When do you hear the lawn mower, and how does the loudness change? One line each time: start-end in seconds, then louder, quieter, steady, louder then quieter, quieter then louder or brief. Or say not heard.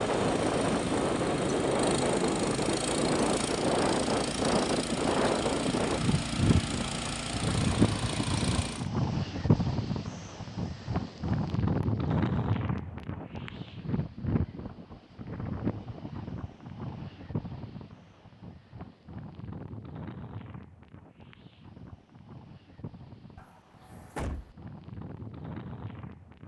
0.0-8.9 steady.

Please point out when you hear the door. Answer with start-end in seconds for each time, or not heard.
23.4-24.6.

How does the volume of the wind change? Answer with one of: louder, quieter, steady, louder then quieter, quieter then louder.
quieter.